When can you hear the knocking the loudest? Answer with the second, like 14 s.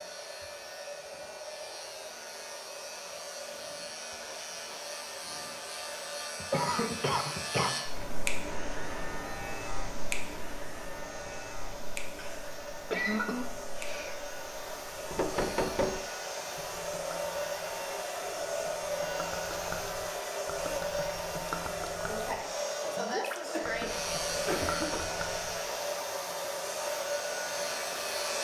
16 s.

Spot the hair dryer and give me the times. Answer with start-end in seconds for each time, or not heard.
0.0-28.3.